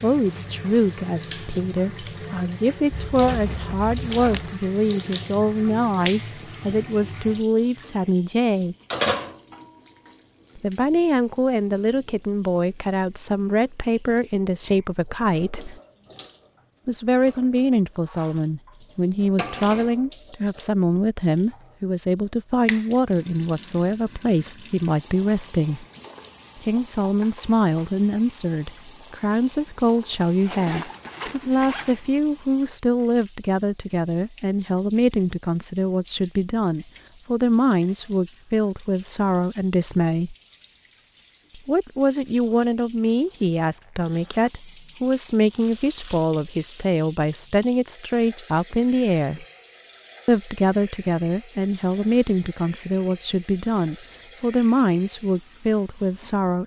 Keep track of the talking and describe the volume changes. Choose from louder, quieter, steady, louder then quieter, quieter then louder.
steady.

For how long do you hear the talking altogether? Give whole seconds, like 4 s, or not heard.
51 s.